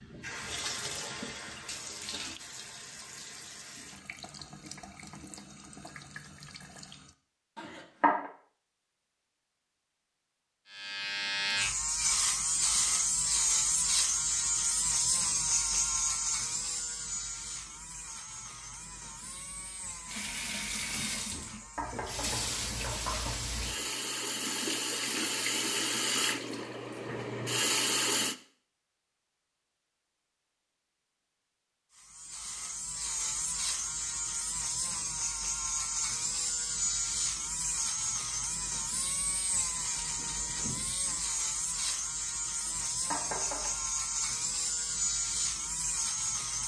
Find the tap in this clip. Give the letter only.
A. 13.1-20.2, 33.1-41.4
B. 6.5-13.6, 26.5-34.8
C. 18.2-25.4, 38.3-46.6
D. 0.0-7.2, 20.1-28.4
D.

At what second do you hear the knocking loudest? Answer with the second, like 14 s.
8 s.